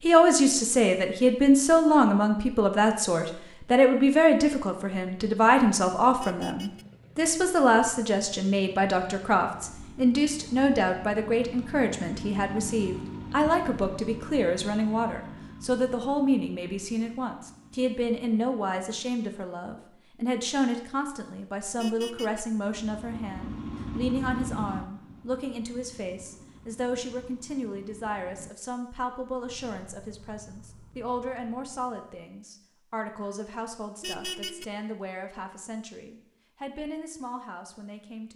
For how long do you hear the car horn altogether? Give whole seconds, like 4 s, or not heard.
2 s.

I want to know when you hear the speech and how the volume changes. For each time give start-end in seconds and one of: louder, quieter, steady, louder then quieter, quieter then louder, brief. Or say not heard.
0.0-38.3 quieter.